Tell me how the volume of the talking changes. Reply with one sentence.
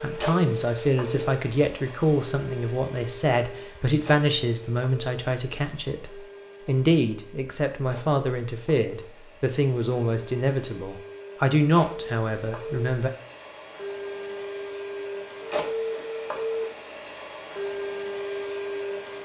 The volume of the talking stays about the same.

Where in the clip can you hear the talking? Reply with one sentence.
You can hear the talking from 0.0 to 13.1 s.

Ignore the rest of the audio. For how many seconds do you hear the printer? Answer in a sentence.
You can hear the printer for 19 seconds altogether.